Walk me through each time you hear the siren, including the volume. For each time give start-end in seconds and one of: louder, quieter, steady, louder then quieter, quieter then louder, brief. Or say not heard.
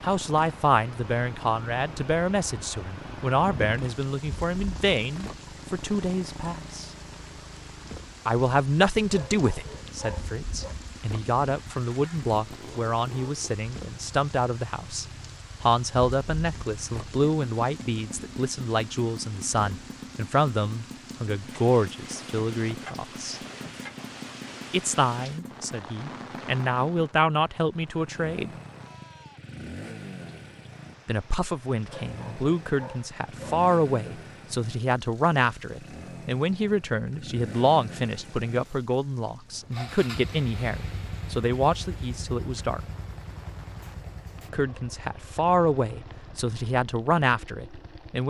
not heard.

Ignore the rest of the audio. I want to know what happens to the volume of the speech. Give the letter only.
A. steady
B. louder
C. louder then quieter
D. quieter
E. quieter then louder
A.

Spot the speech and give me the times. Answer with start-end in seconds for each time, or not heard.
0.0-6.9, 8.2-23.4, 24.7-28.5, 31.1-42.8, 44.5-48.2.